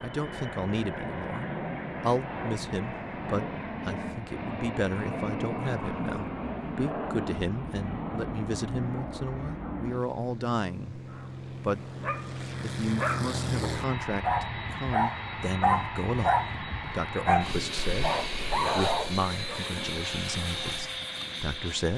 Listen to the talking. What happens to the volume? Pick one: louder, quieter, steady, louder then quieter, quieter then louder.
steady.